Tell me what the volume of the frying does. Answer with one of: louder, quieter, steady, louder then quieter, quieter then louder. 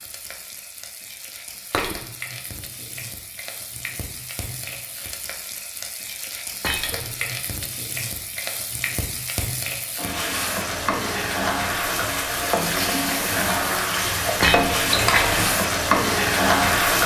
louder.